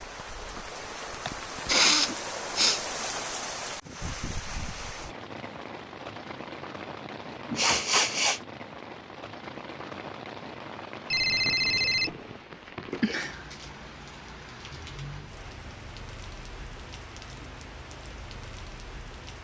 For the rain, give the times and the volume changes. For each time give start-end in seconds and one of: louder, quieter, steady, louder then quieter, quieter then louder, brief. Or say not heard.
0.0-19.3 quieter.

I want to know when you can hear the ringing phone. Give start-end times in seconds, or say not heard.
11.1-12.2.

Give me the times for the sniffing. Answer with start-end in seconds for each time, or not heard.
1.2-2.8, 7.0-8.4, 13.0-13.6.